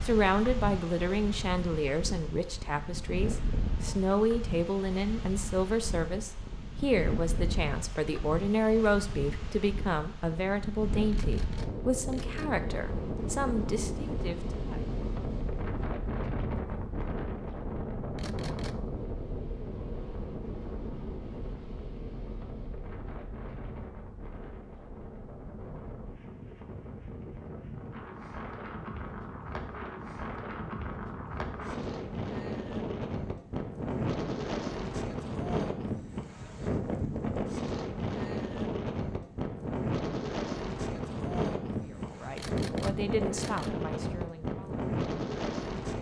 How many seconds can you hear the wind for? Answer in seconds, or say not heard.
46 s.